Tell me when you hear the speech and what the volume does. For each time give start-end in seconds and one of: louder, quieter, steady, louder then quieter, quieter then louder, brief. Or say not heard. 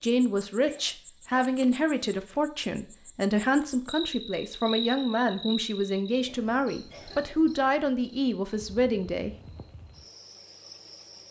0.0-9.3 steady.